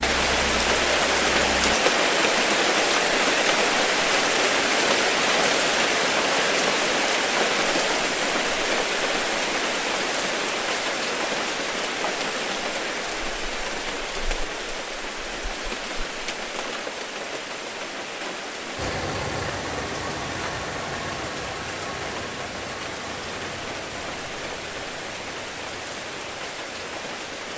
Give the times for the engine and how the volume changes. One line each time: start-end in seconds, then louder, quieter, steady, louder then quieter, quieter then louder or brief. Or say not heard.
0.0-1.8 brief
18.8-27.4 quieter.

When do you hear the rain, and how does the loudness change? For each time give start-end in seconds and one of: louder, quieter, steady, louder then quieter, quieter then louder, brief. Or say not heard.
0.0-27.5 quieter.